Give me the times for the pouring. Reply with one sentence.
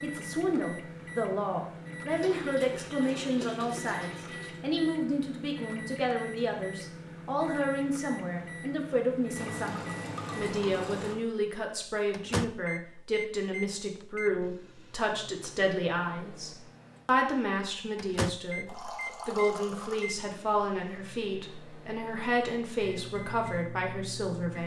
The pouring can be heard from 2.1 to 4.6 s, from 9.3 to 11.2 s and from 18.6 to 20.1 s.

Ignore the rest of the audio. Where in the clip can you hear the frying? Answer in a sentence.
You can't hear the frying here.